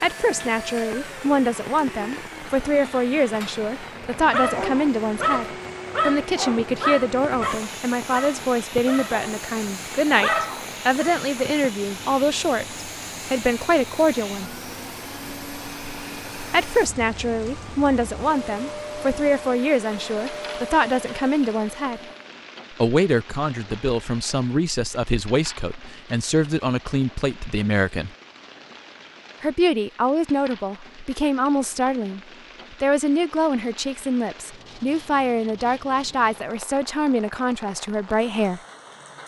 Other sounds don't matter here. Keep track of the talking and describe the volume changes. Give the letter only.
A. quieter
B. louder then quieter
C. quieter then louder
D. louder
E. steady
E.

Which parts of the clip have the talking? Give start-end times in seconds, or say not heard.
0.0-14.5, 16.5-22.0, 22.7-28.1, 29.4-38.6.